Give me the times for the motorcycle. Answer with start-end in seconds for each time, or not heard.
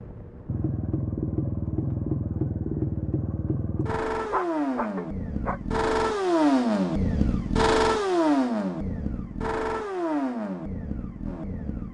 0.0-11.8.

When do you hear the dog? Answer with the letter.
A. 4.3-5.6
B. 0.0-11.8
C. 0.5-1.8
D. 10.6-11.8
A.